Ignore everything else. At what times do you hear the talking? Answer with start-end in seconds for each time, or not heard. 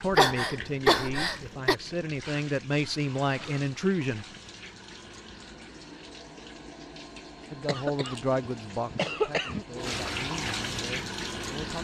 0.0-4.2, 7.5-11.8.